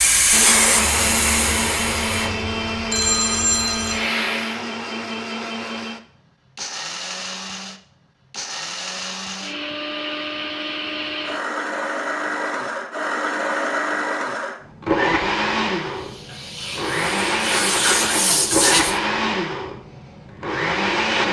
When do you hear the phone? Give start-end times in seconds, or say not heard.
2.9-4.0.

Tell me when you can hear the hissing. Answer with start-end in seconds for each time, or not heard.
0.0-4.7, 15.8-18.9.